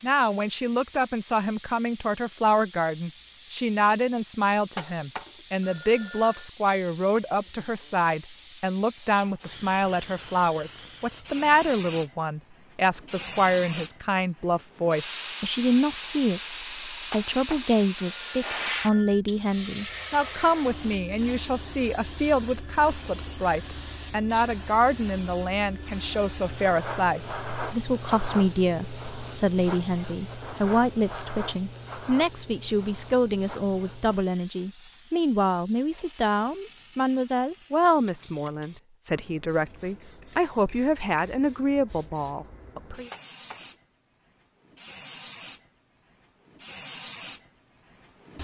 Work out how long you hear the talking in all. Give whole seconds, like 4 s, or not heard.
43 s.